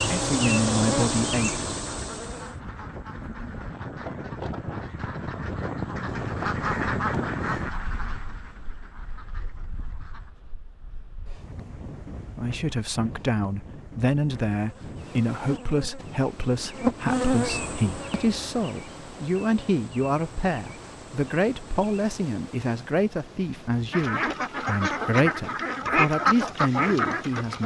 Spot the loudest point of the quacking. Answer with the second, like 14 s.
26 s.